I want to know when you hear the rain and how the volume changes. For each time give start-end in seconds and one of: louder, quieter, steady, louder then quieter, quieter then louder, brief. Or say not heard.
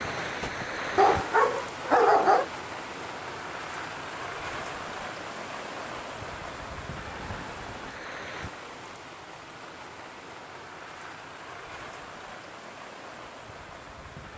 0.0-14.3 quieter.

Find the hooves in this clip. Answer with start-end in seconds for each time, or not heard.
not heard.